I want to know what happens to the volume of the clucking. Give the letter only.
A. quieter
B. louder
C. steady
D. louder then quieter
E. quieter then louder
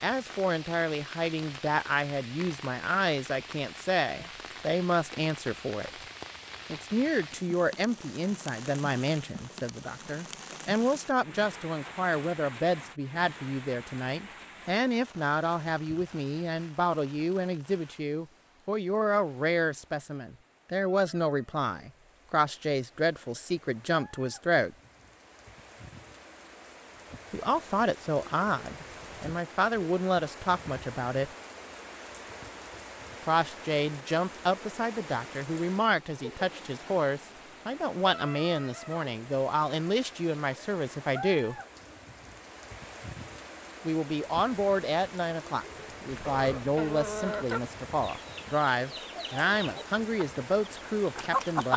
A.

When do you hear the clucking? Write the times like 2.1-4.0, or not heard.
46.1-51.7.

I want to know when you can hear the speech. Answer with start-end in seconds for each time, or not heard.
0.0-6.0, 6.7-24.8, 27.3-31.3, 33.2-41.5, 43.9-51.7.